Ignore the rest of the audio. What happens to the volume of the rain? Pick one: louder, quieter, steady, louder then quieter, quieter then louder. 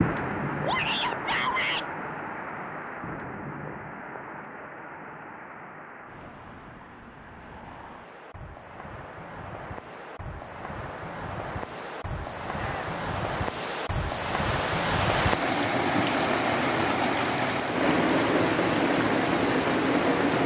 quieter then louder.